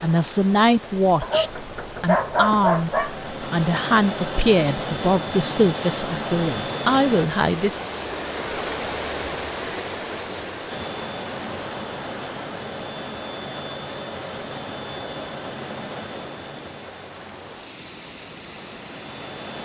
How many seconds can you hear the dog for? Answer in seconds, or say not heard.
2 s.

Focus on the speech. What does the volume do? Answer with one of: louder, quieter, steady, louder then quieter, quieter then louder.
steady.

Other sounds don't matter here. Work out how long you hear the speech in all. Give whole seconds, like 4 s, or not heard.
8 s.